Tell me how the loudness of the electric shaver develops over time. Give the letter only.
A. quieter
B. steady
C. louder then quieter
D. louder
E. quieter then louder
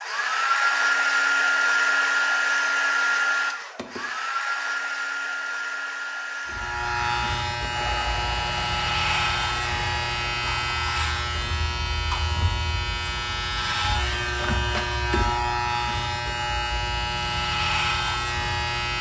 B.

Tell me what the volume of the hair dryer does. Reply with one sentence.
The volume of the hair dryer goes down.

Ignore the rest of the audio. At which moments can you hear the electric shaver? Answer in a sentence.
You can hear the electric shaver from 6.5 to 18.9 s.